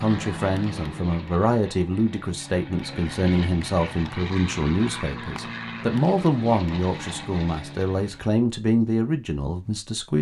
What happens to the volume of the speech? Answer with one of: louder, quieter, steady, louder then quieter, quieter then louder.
steady.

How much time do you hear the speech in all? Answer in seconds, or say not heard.
10 s.